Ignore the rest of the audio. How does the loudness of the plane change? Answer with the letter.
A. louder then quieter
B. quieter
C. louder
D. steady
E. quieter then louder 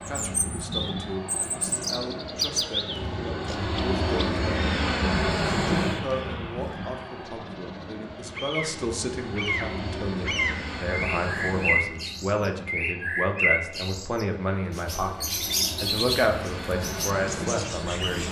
A.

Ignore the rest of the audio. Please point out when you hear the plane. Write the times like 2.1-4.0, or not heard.
0.0-18.2.